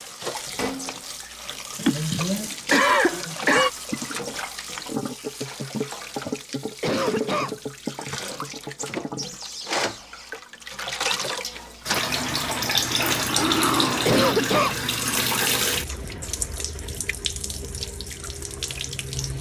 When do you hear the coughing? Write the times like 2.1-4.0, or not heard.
1.8-3.7, 6.8-7.6, 14.1-14.8.